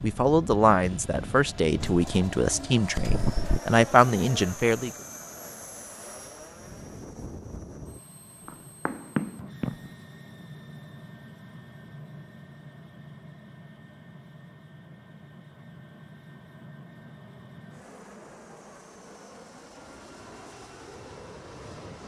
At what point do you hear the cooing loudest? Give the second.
3 s.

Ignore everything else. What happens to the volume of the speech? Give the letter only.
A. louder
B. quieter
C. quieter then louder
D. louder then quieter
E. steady
C.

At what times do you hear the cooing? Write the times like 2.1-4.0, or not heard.
1.8-3.6.